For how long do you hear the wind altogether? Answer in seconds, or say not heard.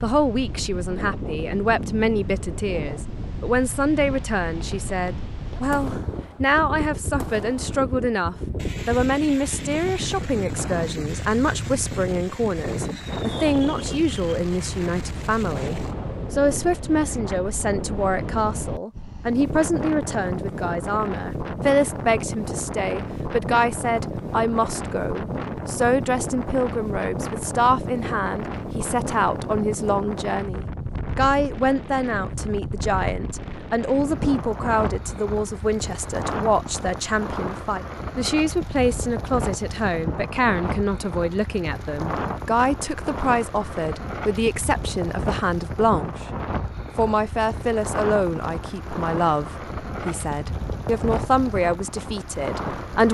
53 s.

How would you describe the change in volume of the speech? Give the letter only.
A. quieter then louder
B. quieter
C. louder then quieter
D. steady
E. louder
D.